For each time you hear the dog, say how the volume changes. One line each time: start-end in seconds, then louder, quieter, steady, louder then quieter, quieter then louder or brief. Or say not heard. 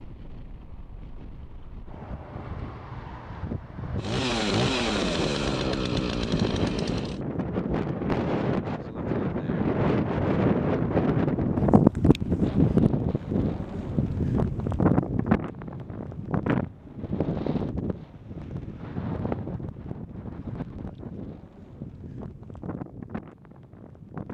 not heard.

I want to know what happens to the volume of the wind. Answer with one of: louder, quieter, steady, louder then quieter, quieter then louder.
louder then quieter.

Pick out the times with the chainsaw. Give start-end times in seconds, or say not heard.
4.0-7.2.